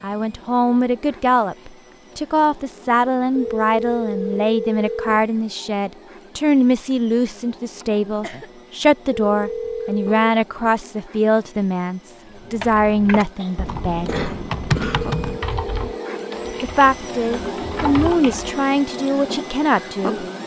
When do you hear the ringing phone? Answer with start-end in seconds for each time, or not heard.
3.4-5.2, 9.2-10.2, 14.9-16.6.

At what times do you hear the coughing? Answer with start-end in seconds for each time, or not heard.
7.8-8.5, 13.4-15.1.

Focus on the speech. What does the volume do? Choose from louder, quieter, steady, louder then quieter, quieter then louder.
steady.